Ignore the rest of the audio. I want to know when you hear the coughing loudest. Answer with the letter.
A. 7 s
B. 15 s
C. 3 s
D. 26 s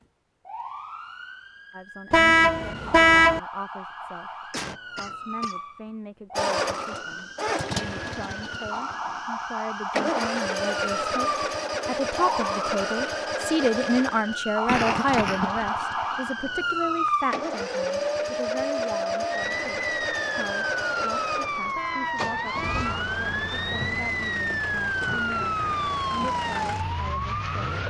B.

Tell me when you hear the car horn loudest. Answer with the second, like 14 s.
3 s.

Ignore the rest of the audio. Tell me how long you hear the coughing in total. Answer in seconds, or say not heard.
3 s.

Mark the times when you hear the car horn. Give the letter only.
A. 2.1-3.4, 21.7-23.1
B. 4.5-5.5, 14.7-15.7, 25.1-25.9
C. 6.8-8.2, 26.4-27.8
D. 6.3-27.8
A.